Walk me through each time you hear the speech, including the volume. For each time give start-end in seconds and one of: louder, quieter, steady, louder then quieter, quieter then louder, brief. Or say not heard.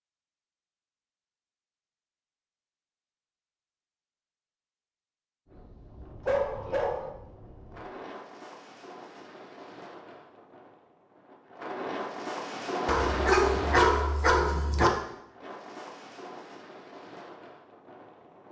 not heard.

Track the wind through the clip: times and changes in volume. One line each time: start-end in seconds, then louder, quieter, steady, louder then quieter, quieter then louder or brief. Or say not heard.
5.5-18.4 louder then quieter.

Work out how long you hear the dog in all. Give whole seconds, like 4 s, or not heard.
3 s.